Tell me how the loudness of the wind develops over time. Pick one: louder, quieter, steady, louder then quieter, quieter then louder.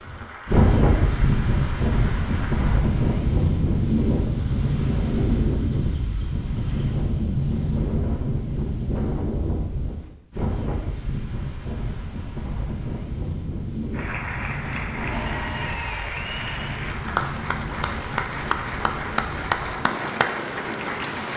quieter.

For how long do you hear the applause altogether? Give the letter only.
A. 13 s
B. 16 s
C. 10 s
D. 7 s
C.